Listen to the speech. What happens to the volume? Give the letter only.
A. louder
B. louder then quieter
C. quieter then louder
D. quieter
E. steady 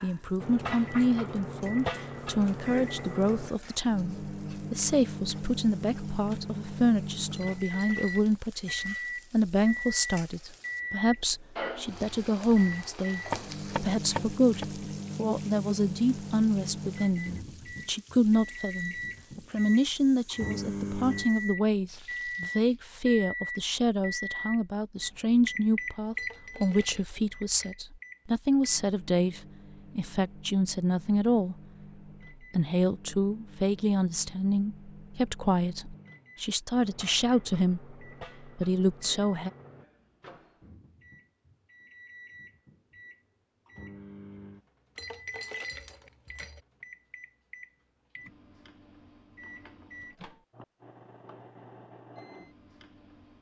E.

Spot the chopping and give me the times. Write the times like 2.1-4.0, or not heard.
13.3-14.7.